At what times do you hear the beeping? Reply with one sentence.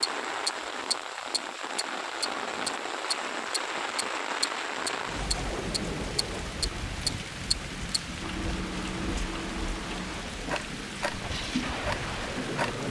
You can't hear the beeping here.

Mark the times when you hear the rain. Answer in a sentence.
The rain can be heard from 0.0 to 12.8 s.